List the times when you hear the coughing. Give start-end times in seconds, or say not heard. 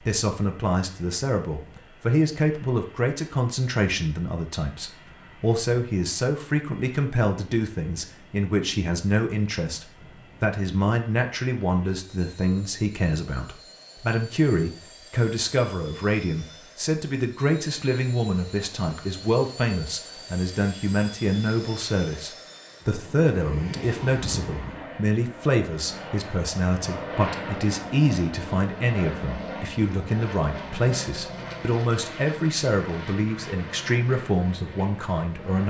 not heard.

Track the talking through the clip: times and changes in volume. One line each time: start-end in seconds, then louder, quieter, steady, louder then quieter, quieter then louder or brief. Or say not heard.
0.0-35.6 steady.